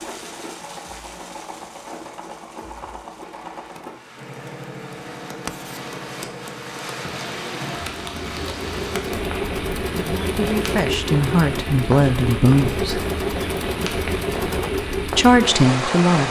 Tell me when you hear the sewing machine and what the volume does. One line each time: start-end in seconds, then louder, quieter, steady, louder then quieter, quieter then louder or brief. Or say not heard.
0.0-16.2 louder.